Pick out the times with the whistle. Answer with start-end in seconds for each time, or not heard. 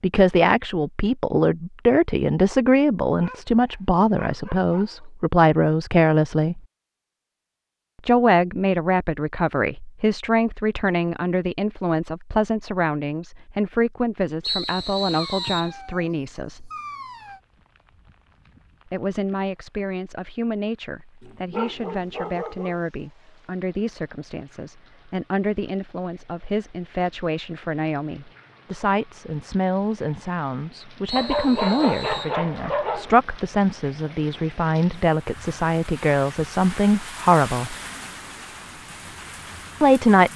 14.4-15.8, 31.1-32.4.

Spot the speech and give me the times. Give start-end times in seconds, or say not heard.
0.0-6.6, 8.1-16.7, 18.9-37.8, 39.8-40.3.